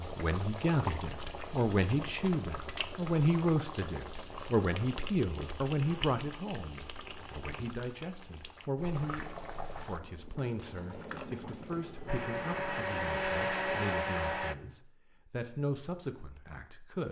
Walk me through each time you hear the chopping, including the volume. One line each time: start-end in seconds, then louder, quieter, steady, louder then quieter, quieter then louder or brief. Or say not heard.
not heard.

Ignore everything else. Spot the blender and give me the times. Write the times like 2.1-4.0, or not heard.
12.1-14.6.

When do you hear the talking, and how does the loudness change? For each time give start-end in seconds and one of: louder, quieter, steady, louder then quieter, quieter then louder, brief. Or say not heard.
0.0-17.0 quieter.